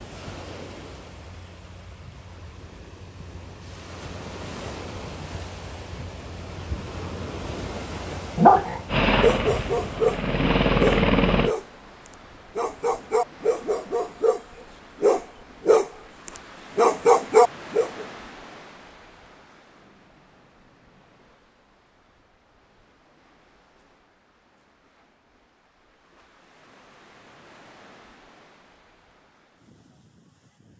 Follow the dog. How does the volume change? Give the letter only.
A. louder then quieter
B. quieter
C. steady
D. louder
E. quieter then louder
E.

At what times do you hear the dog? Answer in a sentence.
The dog can be heard from 8.3 to 14.4 s and from 15.0 to 18.1 s.